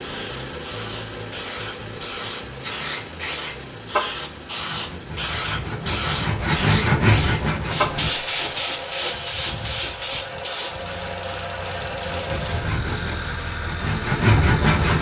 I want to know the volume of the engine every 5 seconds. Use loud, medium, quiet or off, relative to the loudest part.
loud, medium, loud.